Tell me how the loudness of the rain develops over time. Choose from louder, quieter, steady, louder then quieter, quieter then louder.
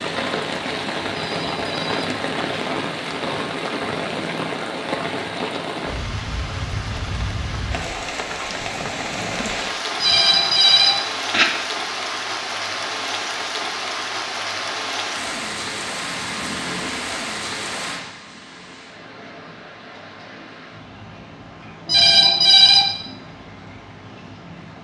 quieter.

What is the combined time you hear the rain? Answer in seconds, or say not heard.
25 s.